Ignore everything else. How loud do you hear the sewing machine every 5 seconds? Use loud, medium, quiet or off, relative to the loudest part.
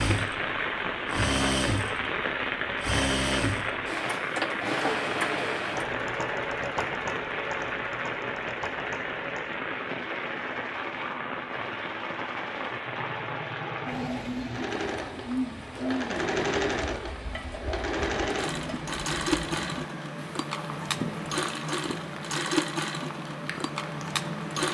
loud, medium, medium, loud, loud.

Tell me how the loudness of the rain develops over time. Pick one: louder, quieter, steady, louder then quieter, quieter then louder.
quieter.